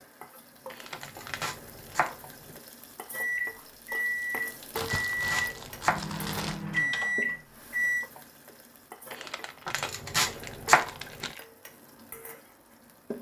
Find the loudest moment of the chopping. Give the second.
11 s.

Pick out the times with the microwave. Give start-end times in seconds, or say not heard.
3.1-8.1.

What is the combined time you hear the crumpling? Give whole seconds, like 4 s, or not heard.
6 s.